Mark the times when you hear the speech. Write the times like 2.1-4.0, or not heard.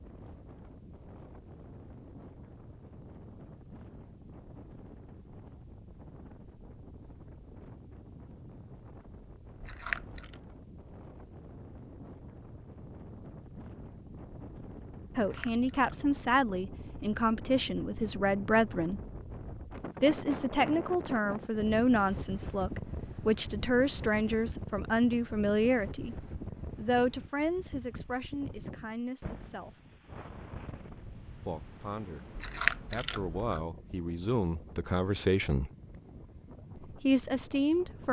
15.2-19.0, 20.0-29.8, 31.4-32.3, 32.9-35.7, 36.8-38.0.